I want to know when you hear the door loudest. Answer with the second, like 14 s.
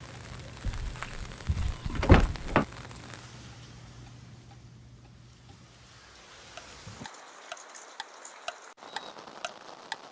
2 s.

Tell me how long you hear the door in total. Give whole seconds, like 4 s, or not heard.
2 s.